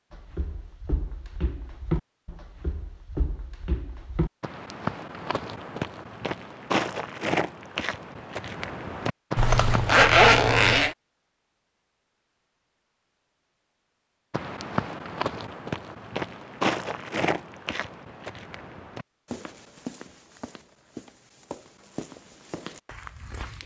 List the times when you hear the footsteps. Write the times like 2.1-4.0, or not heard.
0.1-10.1, 14.3-23.6.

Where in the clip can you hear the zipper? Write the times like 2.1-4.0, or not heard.
9.3-10.9.